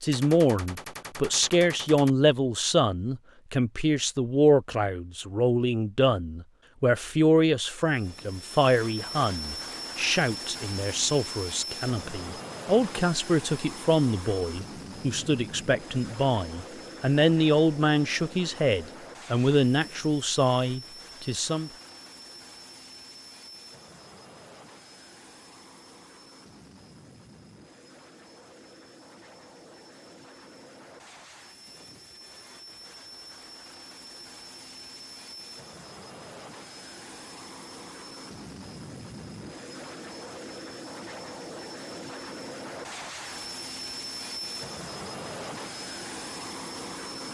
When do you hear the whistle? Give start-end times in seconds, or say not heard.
not heard.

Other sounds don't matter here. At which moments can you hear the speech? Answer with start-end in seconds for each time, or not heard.
0.0-21.7.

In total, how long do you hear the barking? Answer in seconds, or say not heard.
not heard.